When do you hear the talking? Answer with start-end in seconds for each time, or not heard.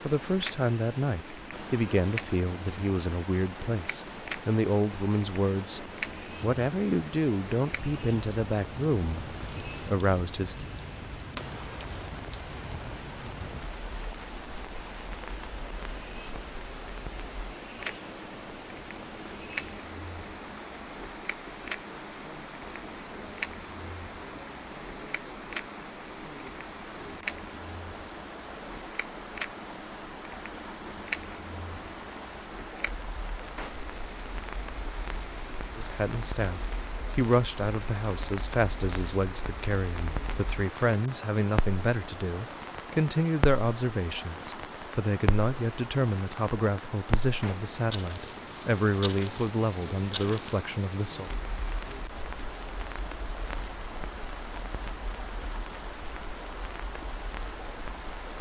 0.0-10.7, 35.8-51.3.